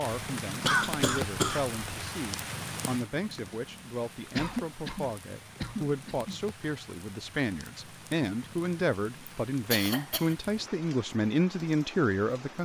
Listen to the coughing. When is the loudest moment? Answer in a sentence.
The volume of the coughing peaks at 1 second.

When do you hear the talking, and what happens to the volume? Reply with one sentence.
The talking can be heard from 0.0 to 12.6 s, getting louder.